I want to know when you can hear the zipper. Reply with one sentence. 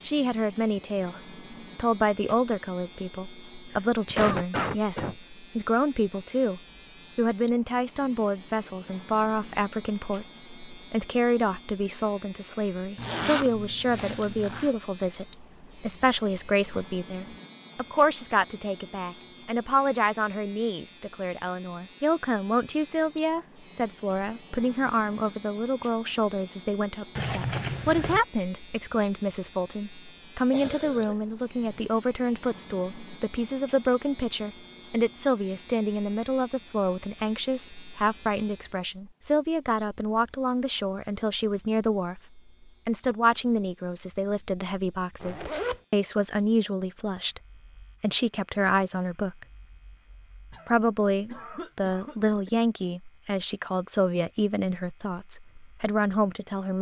You can hear the zipper from 12.9 to 14.8 s, from 27.1 to 28.2 s and from 45.2 to 45.8 s.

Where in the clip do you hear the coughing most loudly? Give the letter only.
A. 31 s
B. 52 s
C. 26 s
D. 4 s
D.